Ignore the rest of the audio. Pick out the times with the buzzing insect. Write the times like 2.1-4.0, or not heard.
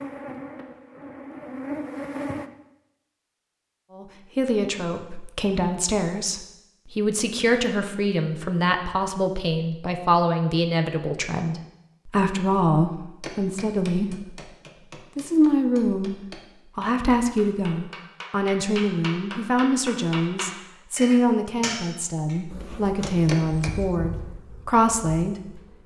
0.0-2.5, 22.5-25.8.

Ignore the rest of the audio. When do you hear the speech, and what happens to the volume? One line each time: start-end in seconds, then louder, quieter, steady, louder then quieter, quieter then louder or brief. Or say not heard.
4.0-14.4 steady
15.2-16.1 brief
16.8-25.4 steady.